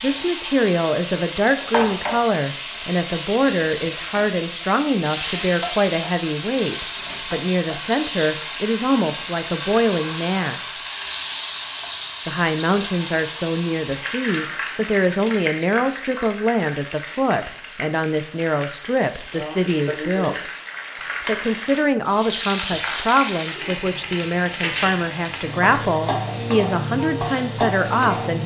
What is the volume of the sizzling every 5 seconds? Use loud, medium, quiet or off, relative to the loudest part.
loud, loud, loud, medium, loud, loud.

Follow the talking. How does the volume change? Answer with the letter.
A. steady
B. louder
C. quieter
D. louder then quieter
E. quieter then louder
A.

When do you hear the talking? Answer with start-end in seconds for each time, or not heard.
0.0-10.8, 12.2-20.4, 21.2-28.4.